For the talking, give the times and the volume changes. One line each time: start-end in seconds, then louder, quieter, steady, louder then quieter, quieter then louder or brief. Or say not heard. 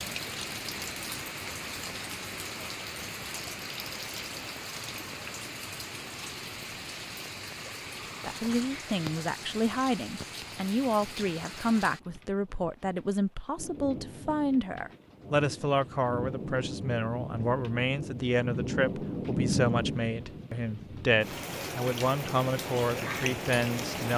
8.2-24.1 steady.